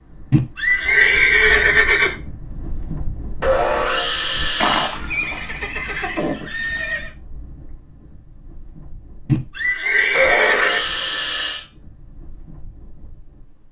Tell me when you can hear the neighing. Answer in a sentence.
You can hear the neighing from 0.3 to 2.1 s, from 4.6 to 7.1 s and from 9.2 to 10.9 s.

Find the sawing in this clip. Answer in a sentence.
You can hear the sawing from 3.4 to 5.0 s and from 10.1 to 11.7 s.